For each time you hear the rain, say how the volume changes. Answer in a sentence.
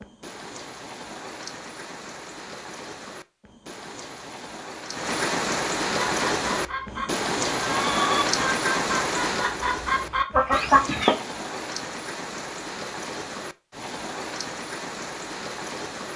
The rain can be heard from 0.0 to 16.1 s, getting louder then quieter.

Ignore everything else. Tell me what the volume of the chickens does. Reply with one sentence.
The loudness of the chickens goes up.